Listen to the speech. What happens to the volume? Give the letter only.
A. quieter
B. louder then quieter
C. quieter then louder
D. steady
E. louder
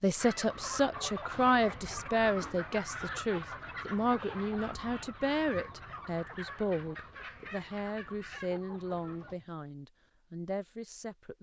A.